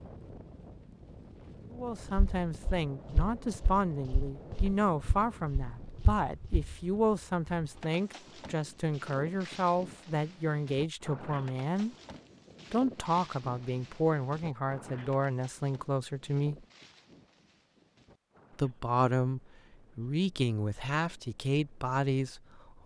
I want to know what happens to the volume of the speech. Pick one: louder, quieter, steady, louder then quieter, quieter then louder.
steady.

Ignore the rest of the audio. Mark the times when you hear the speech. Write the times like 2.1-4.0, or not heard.
1.7-11.9, 12.7-16.6, 18.6-22.8.